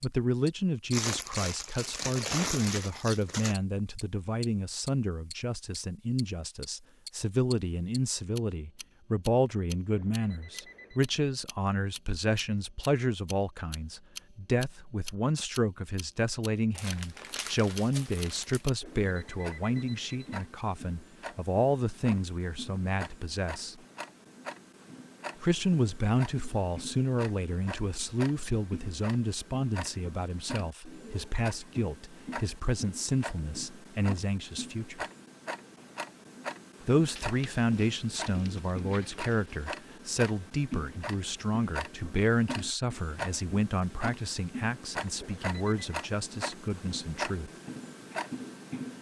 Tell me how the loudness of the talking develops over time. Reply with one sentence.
The loudness of the talking stays about the same.